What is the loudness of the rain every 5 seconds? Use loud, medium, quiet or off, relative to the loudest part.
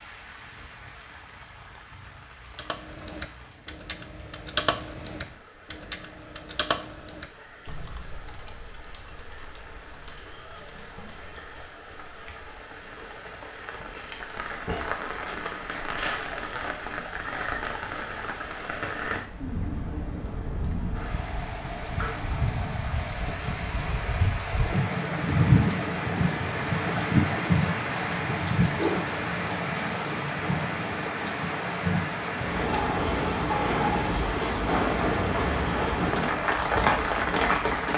quiet, quiet, quiet, medium, medium, loud, loud, loud.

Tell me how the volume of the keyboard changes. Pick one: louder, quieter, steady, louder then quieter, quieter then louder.
louder then quieter.